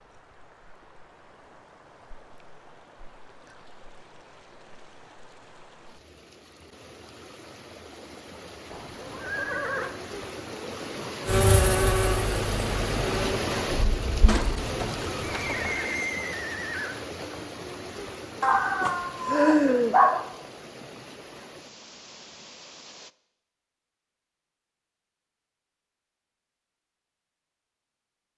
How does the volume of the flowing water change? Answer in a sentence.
The volume of the flowing water goes up, then down.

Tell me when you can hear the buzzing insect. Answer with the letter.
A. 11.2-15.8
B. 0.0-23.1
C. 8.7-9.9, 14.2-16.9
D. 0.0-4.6
A.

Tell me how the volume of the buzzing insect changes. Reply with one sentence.
The volume of the buzzing insect goes down.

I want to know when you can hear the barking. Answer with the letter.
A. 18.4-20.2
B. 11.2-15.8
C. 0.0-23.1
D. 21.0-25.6
A.